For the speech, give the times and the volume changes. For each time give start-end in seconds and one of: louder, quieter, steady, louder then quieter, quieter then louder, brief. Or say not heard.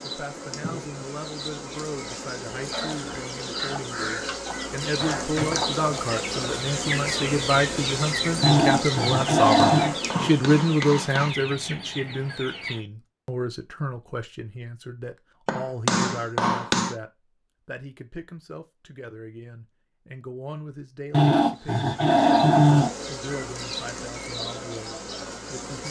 0.0-25.8 louder then quieter.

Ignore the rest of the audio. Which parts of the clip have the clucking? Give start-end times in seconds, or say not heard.
2.7-12.8.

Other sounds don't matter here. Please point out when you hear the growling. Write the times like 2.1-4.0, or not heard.
8.4-9.9, 21.1-22.9.